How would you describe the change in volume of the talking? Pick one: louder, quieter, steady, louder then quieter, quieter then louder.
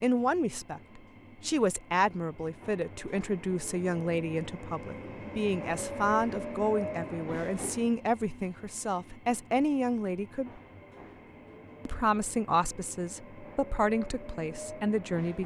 steady.